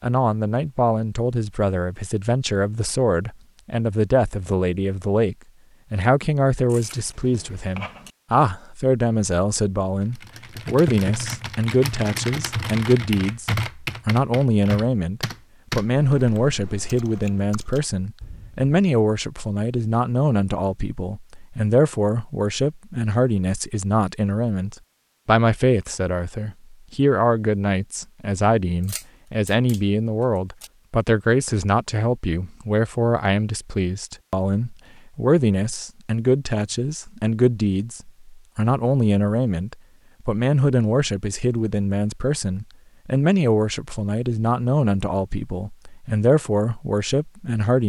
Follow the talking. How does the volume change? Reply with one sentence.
The loudness of the talking stays about the same.